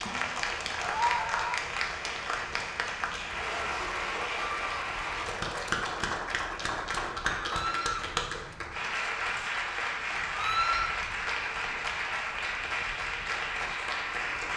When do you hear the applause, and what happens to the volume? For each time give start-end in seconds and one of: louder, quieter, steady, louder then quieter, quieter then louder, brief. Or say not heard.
0.0-14.5 steady.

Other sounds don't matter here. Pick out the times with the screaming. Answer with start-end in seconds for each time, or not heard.
0.8-1.6, 7.4-8.1, 10.3-10.9.